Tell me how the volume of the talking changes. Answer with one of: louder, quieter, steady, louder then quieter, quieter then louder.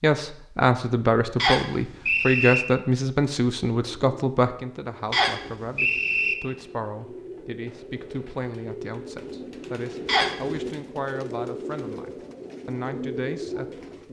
quieter.